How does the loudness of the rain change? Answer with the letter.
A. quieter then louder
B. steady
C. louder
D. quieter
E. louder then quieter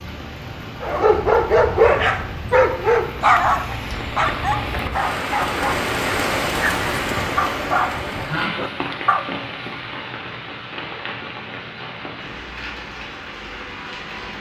E.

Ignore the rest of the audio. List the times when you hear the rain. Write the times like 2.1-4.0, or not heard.
0.0-14.3.